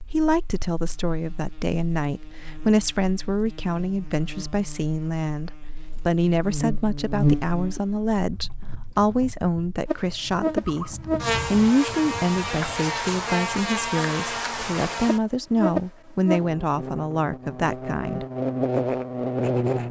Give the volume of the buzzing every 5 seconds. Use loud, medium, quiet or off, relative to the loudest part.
quiet, loud, loud, loud.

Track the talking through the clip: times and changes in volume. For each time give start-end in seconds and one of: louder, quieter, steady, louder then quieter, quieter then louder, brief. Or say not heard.
0.0-18.2 steady.